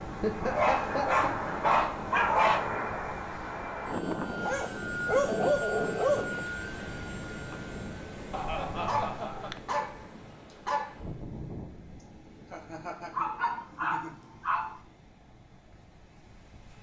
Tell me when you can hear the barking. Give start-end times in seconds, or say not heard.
0.4-2.6, 4.4-6.2, 8.8-10.9, 13.1-14.8.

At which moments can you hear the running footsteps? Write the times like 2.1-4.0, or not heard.
not heard.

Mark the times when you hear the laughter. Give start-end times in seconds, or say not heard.
0.2-1.4, 8.3-9.6, 12.0-14.2.